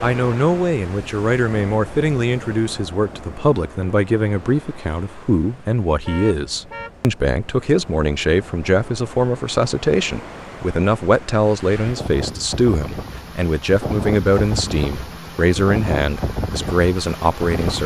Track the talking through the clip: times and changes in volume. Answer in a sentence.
You can hear the talking from 0.0 to 17.8 s, at a steady volume.